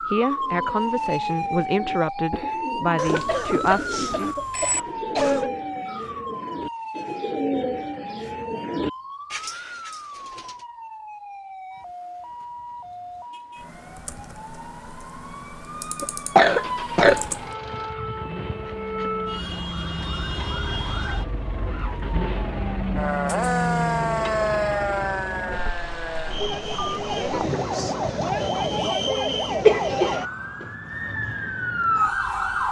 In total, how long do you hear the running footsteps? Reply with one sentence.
You can't hear the running footsteps here.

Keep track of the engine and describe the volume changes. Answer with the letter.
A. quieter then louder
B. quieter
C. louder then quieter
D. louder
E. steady
C.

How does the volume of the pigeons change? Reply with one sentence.
The loudness of the pigeons goes up.